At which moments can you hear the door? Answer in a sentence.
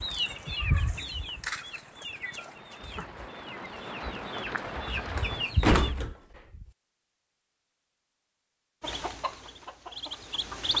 The door can be heard from 5.6 to 6.7 s.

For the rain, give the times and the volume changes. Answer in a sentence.
The rain can be heard from 0.0 to 5.6 s, getting louder.